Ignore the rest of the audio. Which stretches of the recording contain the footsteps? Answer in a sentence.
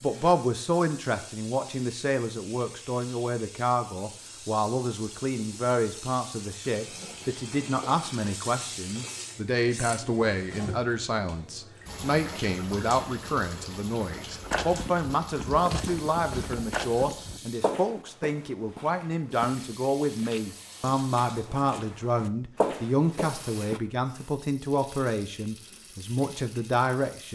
The footsteps can be heard from 14.4 to 23.8 s.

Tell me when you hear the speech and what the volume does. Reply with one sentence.
The speech can be heard from 0.0 to 27.2 s, at a steady volume.